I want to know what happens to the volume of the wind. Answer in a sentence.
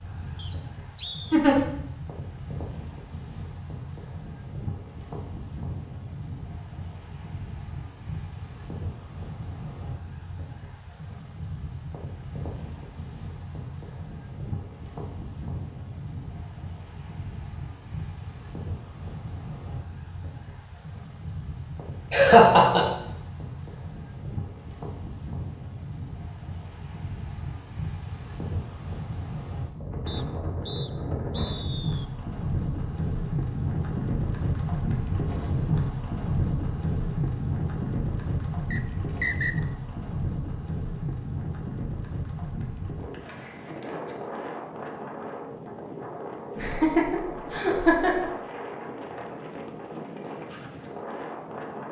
The loudness of the wind goes up, then down.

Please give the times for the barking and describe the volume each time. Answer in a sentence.
The barking can't be heard in this clip.